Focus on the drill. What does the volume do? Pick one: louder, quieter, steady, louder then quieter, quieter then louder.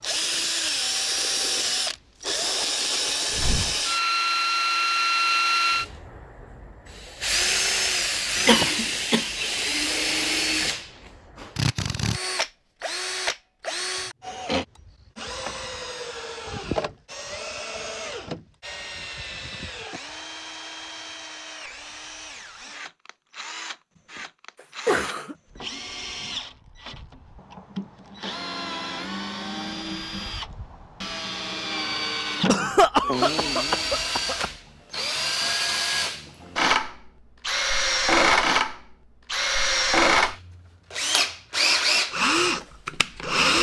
quieter then louder.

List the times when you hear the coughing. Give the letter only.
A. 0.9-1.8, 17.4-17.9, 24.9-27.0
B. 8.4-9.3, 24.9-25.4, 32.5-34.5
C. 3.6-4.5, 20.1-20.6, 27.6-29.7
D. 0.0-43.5
B.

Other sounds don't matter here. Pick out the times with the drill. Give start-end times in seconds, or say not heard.
0.0-43.5.